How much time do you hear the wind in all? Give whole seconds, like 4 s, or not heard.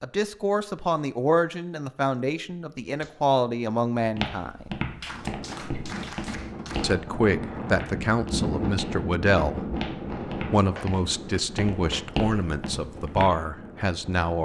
9 s.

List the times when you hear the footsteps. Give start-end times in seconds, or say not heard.
4.0-13.3.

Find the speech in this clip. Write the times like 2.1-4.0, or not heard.
0.0-4.8, 6.8-9.7, 10.5-14.4.